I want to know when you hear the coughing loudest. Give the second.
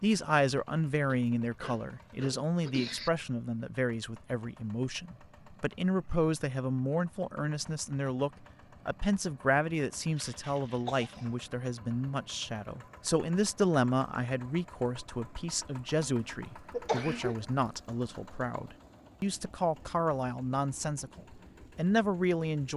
17 s.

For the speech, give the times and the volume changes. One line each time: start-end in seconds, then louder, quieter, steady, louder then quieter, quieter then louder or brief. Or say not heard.
0.0-22.7 steady.